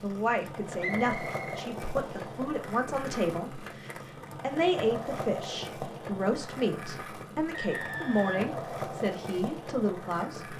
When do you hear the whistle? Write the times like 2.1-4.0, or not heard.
0.8-2.4, 7.5-8.6.